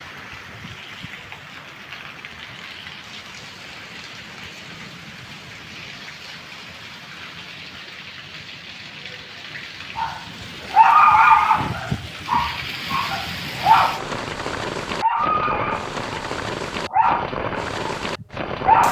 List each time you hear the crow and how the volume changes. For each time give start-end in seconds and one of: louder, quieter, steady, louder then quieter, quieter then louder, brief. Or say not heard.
not heard.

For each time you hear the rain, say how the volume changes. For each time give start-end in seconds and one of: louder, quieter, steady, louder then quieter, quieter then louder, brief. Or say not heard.
0.0-18.8 louder.